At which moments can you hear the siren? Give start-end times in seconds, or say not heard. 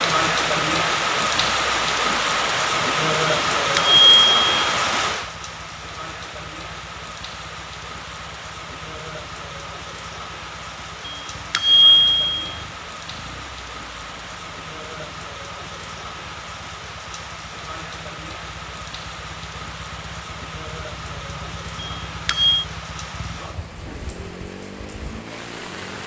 not heard.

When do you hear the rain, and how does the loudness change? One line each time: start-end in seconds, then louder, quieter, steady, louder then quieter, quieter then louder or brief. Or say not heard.
0.0-26.0 quieter.